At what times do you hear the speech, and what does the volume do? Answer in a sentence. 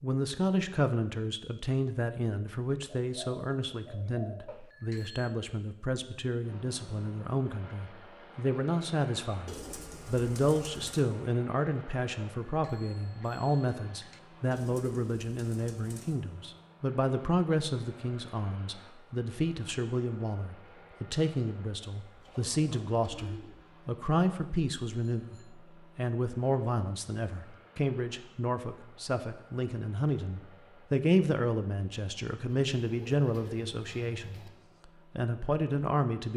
The speech can be heard from 0.0 to 36.3 s, at a steady volume.